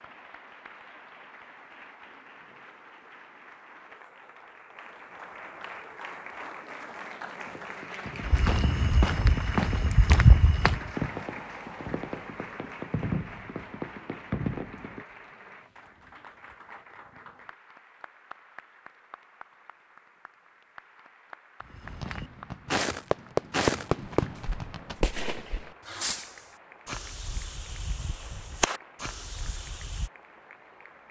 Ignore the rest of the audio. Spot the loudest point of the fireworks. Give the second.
24 s.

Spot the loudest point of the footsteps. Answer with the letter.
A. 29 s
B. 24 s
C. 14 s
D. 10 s
D.